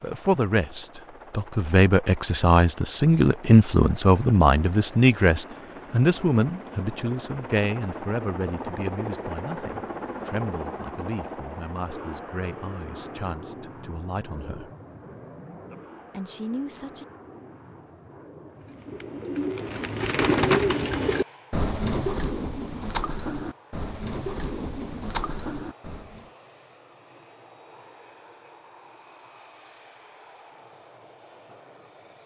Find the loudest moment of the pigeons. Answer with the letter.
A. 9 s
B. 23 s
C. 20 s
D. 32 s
C.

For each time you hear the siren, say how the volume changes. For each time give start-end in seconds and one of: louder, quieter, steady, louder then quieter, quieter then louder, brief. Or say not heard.
not heard.